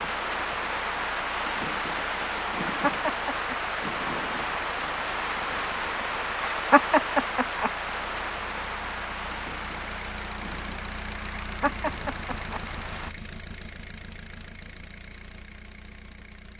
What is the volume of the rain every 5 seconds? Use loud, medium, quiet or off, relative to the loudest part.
loud, loud, medium, off.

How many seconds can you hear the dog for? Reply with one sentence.
The dog can't be heard in this clip.